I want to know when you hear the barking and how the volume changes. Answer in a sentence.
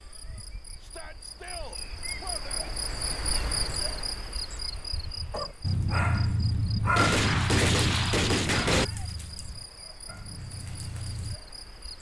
The barking can be heard from 5.3 to 11.4 s, getting quieter.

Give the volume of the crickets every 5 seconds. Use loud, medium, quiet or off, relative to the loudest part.
loud, medium, medium.